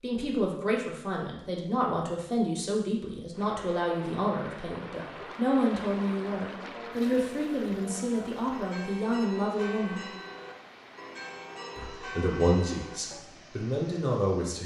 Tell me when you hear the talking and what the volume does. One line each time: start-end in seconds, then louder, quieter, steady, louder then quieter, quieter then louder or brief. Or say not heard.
0.0-10.1 steady
11.8-14.6 brief.